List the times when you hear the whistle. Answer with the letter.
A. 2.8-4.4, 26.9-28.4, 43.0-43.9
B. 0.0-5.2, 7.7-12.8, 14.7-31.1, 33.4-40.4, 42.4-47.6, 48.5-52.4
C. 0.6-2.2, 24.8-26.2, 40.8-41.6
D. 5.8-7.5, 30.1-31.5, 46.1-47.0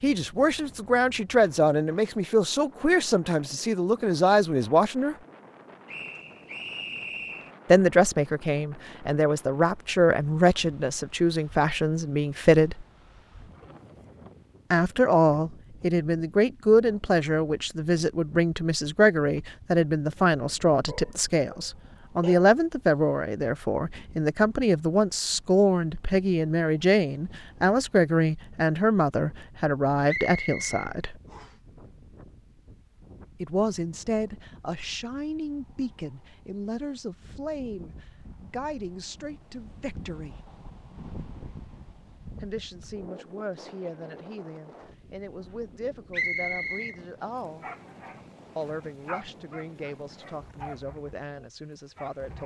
D.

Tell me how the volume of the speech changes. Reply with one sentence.
The volume of the speech goes down.